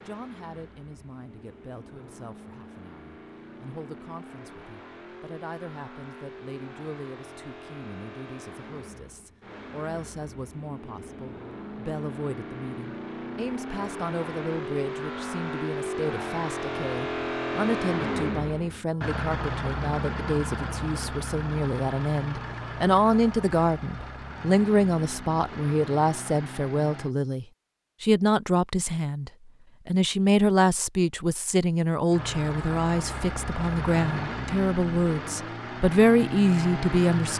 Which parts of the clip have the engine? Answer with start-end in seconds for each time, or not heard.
0.0-27.1, 32.1-37.3.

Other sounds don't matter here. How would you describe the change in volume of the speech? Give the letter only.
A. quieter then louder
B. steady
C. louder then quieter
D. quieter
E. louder
E.